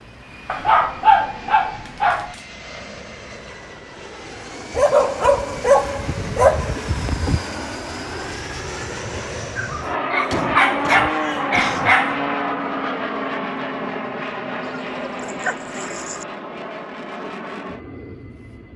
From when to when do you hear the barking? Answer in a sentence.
The barking can be heard from 0.5 to 2.4 s, from 4.7 to 7.5 s, from 9.6 to 12.2 s and from 14.7 to 16.2 s.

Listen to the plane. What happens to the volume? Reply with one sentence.
The loudness of the plane goes up, then down.